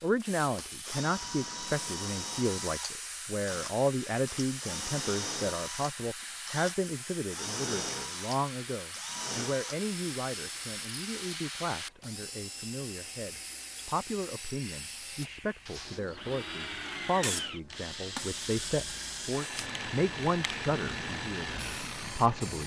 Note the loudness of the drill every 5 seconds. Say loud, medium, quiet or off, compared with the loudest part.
loud, loud, medium, loud, loud.